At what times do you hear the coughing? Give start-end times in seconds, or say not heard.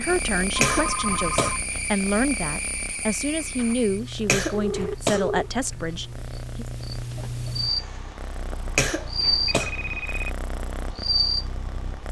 0.6-1.6, 4.2-6.0, 8.8-10.1.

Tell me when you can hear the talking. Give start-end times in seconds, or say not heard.
0.0-6.7.